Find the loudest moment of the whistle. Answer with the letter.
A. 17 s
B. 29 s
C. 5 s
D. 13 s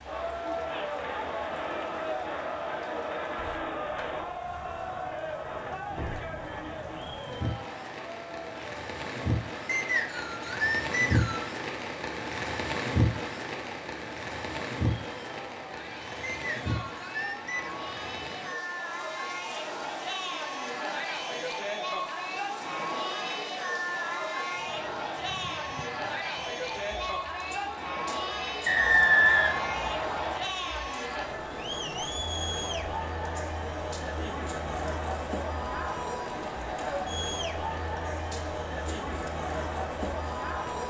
B.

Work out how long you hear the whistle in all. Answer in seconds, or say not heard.
5 s.